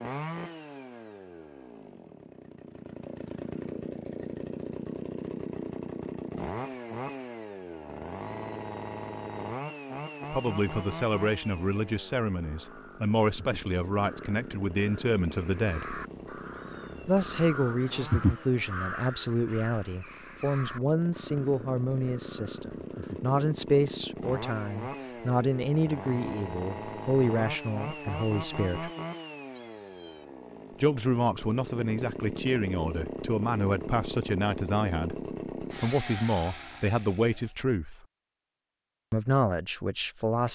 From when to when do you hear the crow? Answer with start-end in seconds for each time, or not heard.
11.9-23.2.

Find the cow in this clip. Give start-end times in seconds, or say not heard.
not heard.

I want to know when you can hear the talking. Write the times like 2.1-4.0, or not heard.
10.3-15.9, 17.1-28.9, 30.8-38.0, 39.1-40.5.